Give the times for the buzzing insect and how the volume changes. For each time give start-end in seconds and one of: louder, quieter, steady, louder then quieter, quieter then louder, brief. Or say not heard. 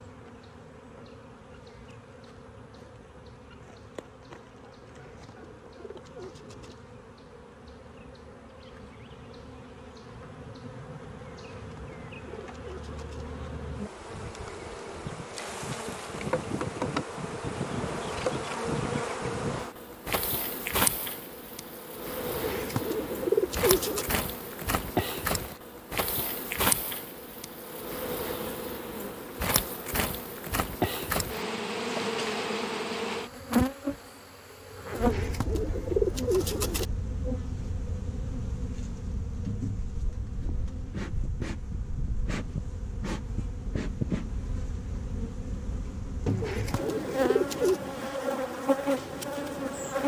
0.0-50.0 louder.